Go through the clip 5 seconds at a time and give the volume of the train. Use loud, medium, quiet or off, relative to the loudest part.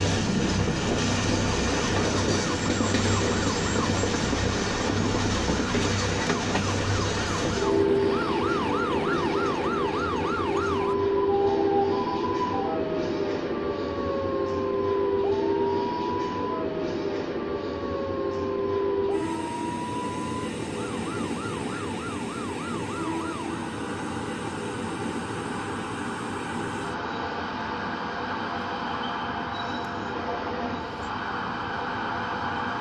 loud, loud, loud, loud, medium, medium, medium.